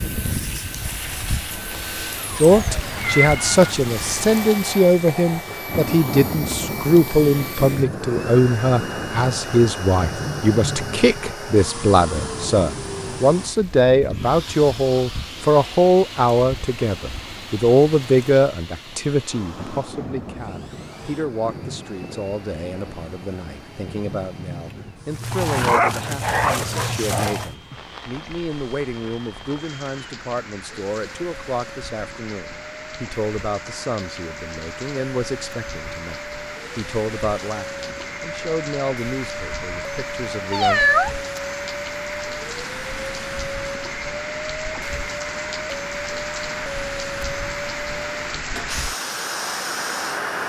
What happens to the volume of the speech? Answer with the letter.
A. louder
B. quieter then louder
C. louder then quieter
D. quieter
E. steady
D.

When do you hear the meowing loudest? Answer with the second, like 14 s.
41 s.